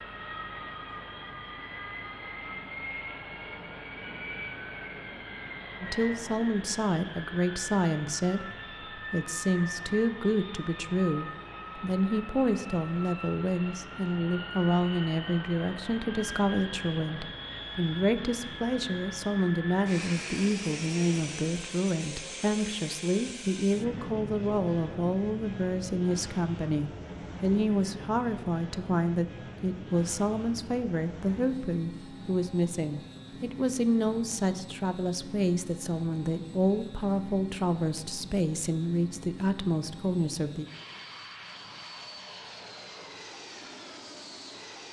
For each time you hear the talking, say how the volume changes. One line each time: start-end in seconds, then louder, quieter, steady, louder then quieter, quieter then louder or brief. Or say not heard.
5.8-40.6 steady.